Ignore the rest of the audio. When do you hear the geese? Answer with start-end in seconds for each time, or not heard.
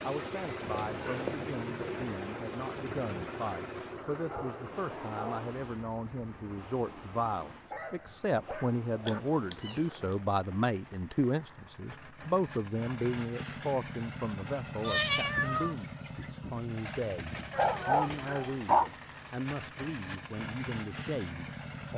not heard.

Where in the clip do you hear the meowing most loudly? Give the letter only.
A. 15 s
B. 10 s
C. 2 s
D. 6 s
A.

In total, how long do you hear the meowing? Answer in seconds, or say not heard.
3 s.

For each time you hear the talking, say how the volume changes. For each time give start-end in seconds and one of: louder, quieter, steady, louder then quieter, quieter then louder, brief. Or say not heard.
0.0-21.9 louder then quieter.